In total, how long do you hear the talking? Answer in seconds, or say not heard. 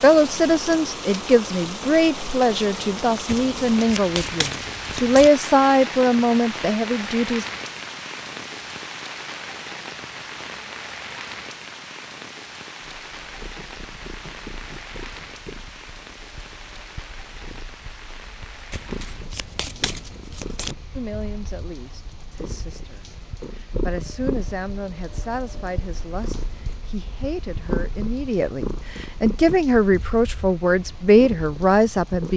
19 s.